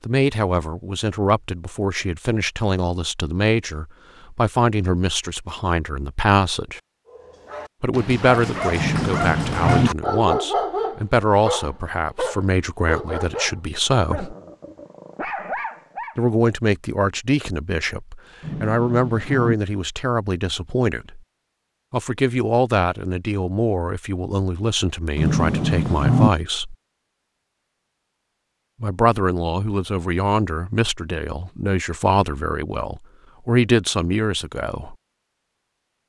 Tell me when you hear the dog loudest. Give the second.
10 s.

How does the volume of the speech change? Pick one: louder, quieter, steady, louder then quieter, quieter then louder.
steady.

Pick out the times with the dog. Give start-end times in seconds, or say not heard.
7.0-16.2.